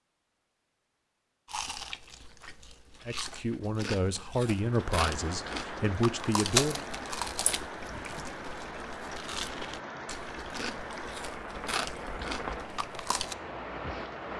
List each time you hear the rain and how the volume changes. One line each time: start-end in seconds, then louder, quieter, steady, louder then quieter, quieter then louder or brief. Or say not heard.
4.5-14.3 steady.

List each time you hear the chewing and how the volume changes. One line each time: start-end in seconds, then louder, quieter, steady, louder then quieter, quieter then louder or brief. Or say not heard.
1.4-13.3 louder then quieter.